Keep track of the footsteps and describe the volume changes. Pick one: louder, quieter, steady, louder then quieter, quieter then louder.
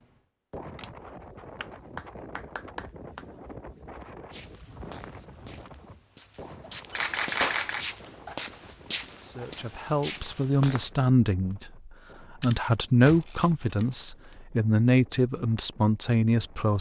louder.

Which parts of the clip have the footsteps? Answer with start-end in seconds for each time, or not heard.
4.3-10.9.